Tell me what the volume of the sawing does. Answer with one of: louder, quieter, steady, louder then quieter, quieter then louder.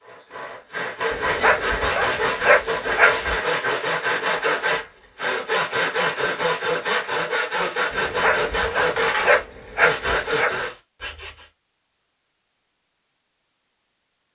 steady.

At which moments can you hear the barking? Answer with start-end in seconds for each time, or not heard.
1.1-3.4, 7.9-10.6.